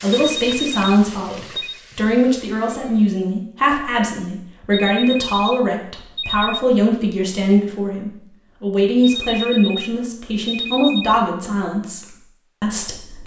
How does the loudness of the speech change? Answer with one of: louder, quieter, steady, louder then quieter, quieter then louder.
steady.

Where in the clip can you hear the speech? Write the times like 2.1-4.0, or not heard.
0.0-13.2.